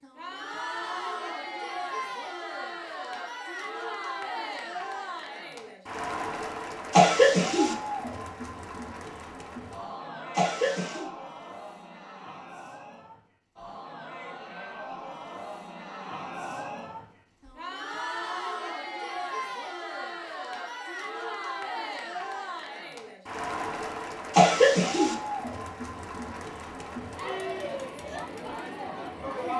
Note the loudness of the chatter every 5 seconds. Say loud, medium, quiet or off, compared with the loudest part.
loud, loud, medium, loud, loud, loud.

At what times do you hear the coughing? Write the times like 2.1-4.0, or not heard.
6.9-7.8, 10.3-11.1, 24.3-25.1.